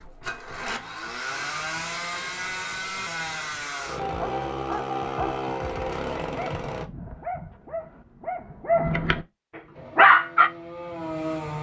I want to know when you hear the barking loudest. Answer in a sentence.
The loudest moment of the barking is at 10 seconds.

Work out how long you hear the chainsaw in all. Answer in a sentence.
You can hear the chainsaw for 9 seconds altogether.